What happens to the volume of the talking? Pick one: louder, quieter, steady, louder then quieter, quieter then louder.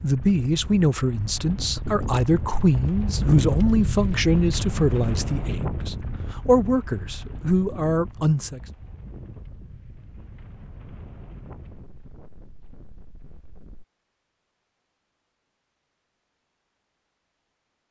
steady.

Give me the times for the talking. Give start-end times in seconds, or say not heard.
0.0-8.6.